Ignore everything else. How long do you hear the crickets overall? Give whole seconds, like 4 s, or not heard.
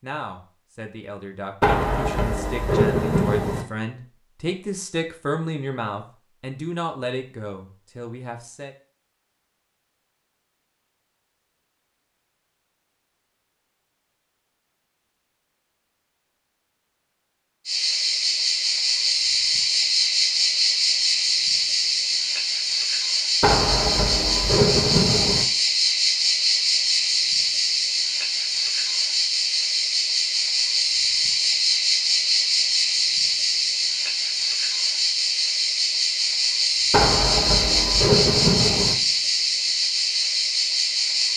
24 s.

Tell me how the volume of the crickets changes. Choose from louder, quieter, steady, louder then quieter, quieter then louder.
steady.